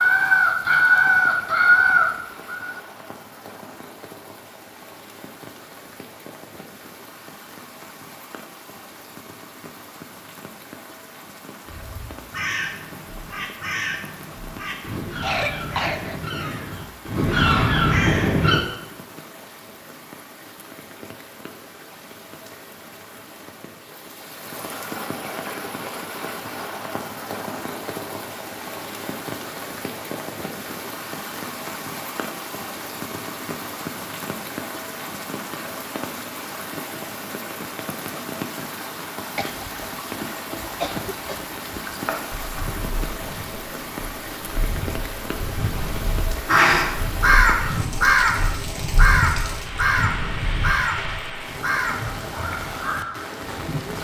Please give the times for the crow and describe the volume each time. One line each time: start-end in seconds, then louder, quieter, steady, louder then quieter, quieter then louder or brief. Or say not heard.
0.0-2.8 brief
11.7-18.6 louder
46.5-53.5 quieter.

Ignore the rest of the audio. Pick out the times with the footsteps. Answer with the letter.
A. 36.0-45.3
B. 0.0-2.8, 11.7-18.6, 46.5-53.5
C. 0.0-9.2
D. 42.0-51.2
D.